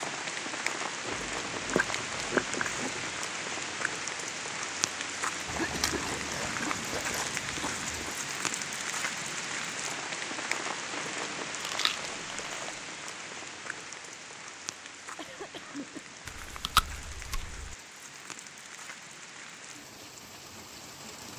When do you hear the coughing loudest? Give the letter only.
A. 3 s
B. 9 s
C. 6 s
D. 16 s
C.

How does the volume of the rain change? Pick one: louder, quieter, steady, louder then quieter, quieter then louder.
quieter.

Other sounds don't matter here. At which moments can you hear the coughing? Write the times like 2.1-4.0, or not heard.
5.5-6.2, 15.2-16.1.